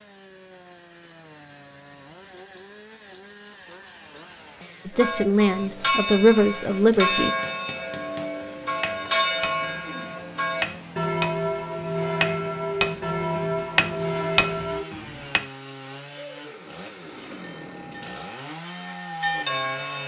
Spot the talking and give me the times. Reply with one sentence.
You can hear the talking from 4.8 to 7.3 s.